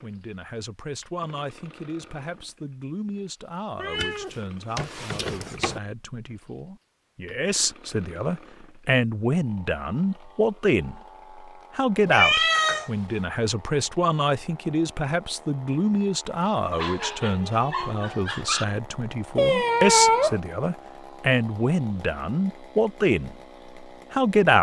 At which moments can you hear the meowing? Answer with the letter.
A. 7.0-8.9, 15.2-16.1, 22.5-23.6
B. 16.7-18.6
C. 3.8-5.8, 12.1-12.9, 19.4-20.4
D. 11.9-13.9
C.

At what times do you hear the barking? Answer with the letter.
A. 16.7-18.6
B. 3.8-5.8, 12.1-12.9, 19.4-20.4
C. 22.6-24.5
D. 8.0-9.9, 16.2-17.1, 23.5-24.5
A.